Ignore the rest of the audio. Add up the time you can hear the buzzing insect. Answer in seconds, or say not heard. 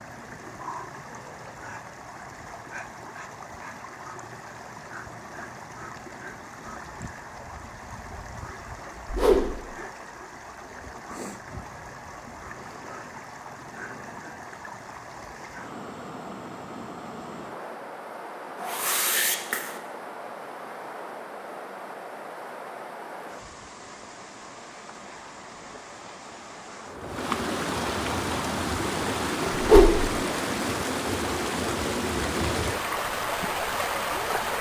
not heard.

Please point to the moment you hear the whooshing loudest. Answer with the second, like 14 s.
30 s.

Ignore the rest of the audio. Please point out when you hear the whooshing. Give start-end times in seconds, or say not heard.
9.1-9.7, 18.6-19.8, 29.6-30.1.